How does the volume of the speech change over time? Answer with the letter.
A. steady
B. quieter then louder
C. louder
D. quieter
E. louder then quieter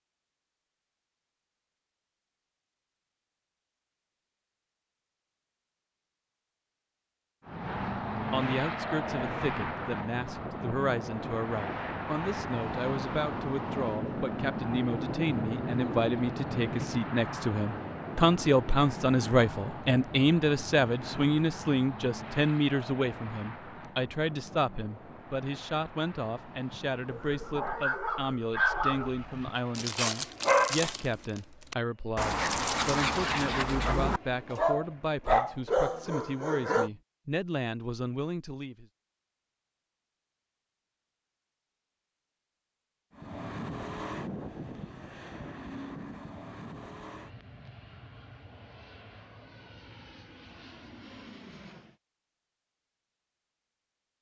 E.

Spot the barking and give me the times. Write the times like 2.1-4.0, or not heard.
26.7-36.9.